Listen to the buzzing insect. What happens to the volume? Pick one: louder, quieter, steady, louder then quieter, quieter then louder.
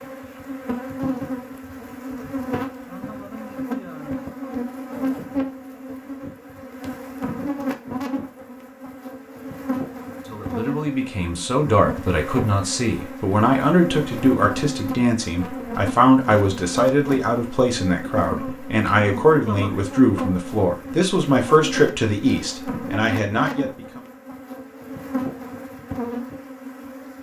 steady.